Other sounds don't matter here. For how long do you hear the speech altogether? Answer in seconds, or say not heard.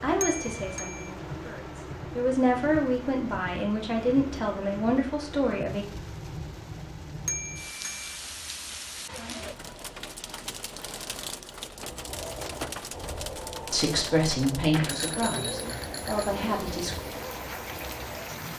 9 s.